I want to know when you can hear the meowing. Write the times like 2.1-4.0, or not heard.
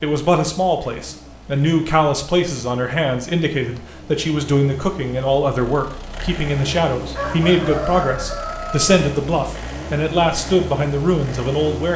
not heard.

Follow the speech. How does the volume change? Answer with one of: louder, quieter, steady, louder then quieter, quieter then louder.
steady.